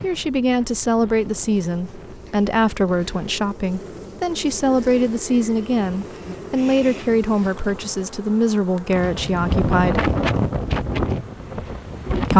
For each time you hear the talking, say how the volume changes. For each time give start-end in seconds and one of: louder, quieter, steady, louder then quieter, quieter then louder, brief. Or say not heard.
0.0-10.1 steady.